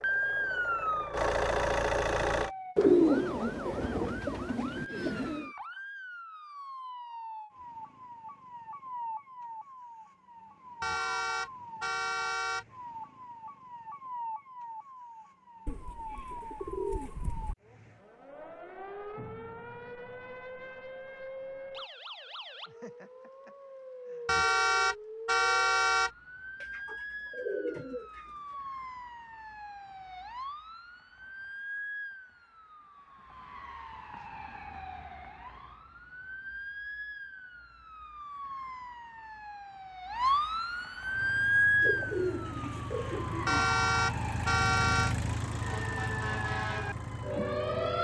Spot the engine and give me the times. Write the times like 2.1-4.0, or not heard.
0.0-2.5, 41.1-47.9.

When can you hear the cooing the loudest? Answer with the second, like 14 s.
3 s.